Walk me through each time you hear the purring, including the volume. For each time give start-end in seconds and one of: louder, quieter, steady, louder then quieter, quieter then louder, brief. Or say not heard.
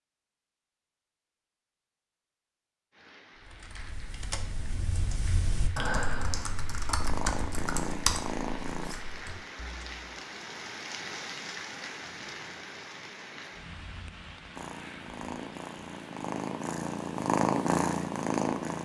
7.0-8.9 brief
14.5-18.8 louder.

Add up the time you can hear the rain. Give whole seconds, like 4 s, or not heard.
16 s.